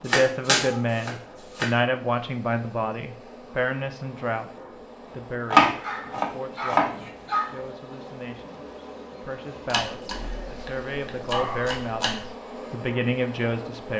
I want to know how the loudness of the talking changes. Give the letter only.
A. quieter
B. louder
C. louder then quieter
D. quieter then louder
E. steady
D.